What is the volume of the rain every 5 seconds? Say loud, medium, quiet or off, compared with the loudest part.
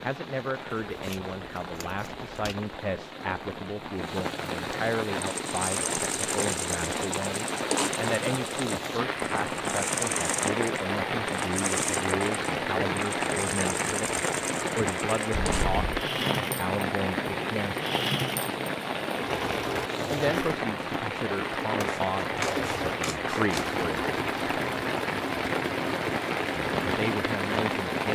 medium, loud, loud, loud, loud, loud.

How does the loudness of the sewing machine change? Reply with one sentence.
The loudness of the sewing machine stays about the same.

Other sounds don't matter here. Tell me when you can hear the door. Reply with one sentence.
The door can't be heard in this clip.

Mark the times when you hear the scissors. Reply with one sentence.
The scissors can be heard from 0.7 to 2.5 s, from 15.3 to 16.1 s and from 21.9 to 23.7 s.